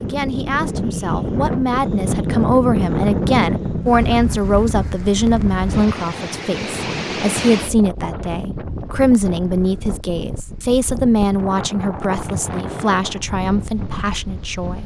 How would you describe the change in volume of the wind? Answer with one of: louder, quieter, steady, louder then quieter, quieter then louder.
quieter.